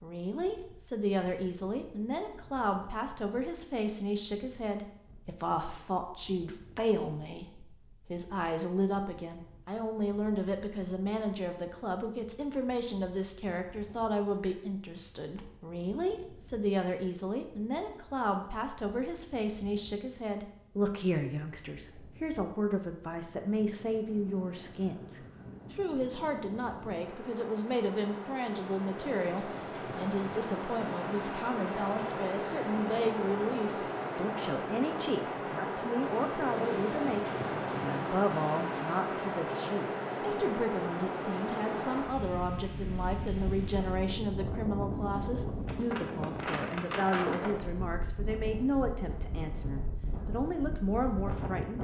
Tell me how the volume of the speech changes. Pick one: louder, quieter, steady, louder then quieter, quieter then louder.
steady.